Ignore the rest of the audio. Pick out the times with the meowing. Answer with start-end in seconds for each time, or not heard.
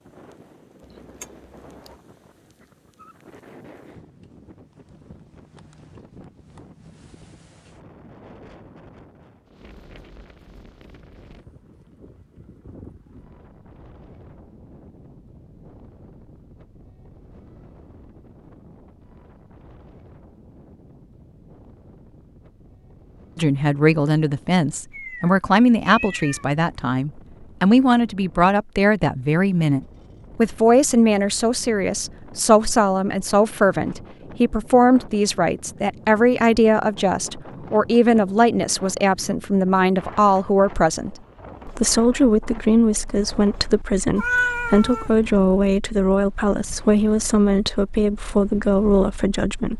0.8-1.9, 24.9-26.4, 44.1-45.1.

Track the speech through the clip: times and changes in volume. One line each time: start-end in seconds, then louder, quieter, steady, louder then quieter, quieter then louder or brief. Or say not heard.
23.4-49.7 steady.